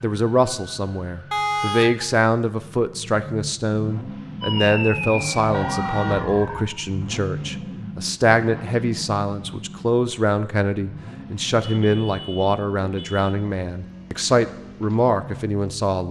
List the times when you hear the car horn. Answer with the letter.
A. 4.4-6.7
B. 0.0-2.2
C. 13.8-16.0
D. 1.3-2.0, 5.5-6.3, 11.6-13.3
D.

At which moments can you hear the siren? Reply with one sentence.
The siren can be heard from 4.4 to 6.7 s.